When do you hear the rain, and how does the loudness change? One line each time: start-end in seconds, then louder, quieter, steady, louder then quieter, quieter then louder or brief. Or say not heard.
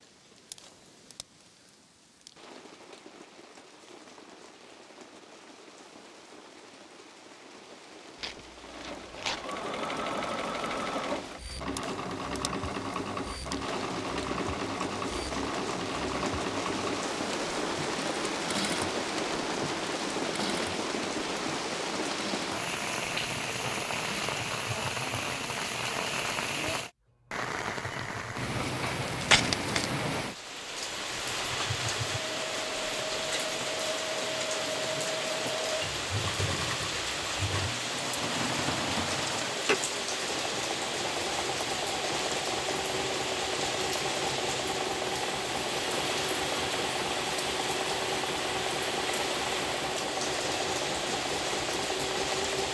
0.0-52.7 louder.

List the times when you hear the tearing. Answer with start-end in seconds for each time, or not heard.
8.2-9.4, 29.0-29.9.